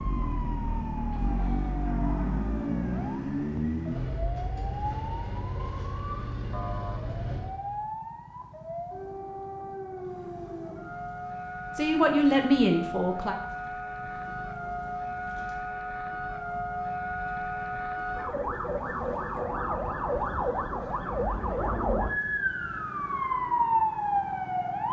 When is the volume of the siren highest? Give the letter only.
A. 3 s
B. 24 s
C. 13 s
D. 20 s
B.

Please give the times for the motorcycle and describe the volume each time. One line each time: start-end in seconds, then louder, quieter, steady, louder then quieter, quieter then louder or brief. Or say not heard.
0.0-24.8 quieter.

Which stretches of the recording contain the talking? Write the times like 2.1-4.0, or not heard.
11.8-13.3.